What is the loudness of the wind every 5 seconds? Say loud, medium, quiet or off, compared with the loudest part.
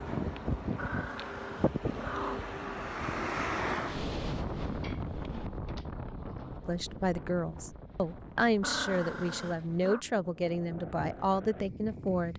loud, medium, medium.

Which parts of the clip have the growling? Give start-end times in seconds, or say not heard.
0.8-2.6, 4.8-6.7, 8.6-10.1.